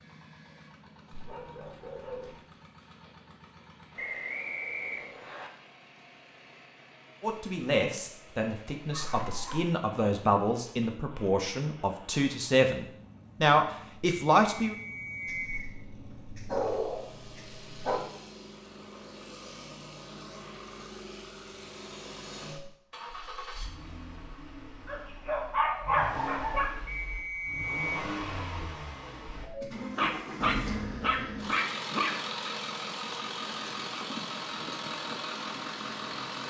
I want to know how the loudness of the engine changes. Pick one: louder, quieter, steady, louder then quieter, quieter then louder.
louder.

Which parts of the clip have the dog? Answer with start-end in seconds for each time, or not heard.
1.1-2.4, 8.9-9.7, 15.2-18.0, 24.9-26.8, 29.9-32.5.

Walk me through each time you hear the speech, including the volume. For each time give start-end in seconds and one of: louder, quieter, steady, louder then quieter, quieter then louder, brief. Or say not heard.
7.2-14.8 louder.